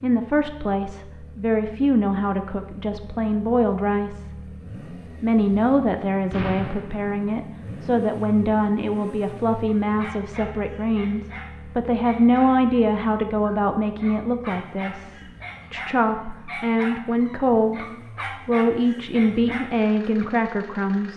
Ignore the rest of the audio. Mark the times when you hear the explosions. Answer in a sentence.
The explosions can be heard from 6.3 to 7.3 s.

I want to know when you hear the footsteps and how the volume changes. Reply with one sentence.
You can't hear the footsteps here.